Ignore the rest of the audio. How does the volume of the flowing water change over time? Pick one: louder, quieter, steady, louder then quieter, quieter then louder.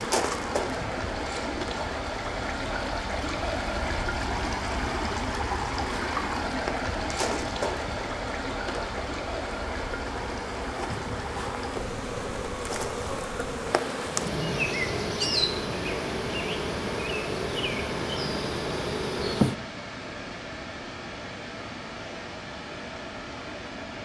quieter.